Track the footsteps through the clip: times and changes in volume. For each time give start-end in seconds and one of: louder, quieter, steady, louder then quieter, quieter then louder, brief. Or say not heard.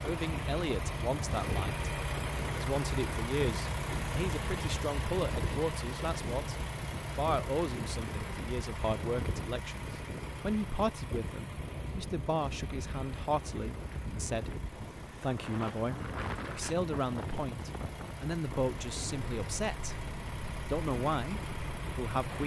not heard.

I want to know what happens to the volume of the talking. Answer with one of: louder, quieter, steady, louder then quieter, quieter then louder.
steady.